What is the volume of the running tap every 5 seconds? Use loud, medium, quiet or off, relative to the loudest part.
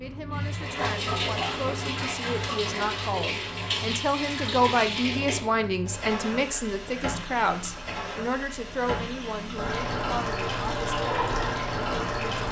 loud, medium, loud.